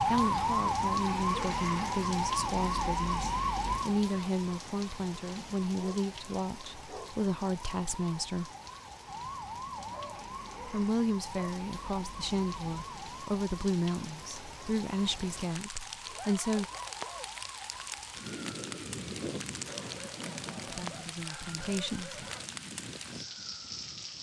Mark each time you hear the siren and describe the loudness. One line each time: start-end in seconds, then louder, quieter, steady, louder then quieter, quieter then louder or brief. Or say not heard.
0.0-24.1 quieter.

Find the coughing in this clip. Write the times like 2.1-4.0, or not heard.
not heard.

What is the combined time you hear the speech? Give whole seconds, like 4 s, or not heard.
16 s.